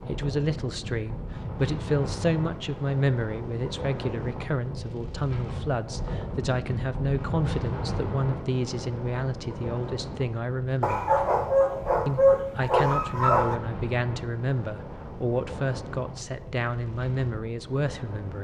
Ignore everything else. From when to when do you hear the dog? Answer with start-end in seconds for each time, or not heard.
10.8-13.6.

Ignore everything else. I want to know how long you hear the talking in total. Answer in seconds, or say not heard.
17 s.